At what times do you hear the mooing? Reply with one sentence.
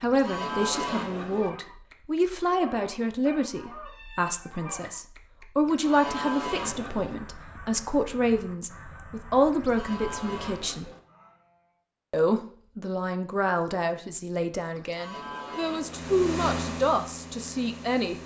You can hear the mooing from 0.0 to 1.5 s, from 5.7 to 7.2 s, from 9.5 to 11.0 s and from 14.8 to 16.2 s.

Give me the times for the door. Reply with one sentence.
The door can't be heard in this clip.